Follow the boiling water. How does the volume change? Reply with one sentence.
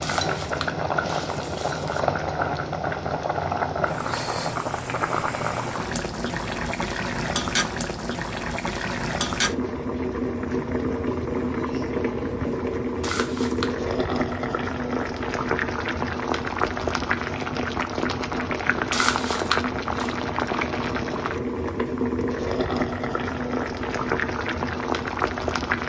The loudness of the boiling water stays about the same.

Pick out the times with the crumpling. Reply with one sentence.
The crumpling can be heard from 0.0 to 2.0 s, from 13.0 to 13.8 s and from 18.9 to 20.1 s.